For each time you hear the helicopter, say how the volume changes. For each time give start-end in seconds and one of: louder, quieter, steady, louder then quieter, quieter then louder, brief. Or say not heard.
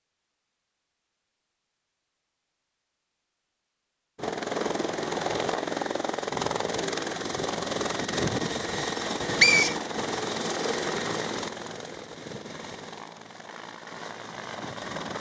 4.2-15.1 quieter.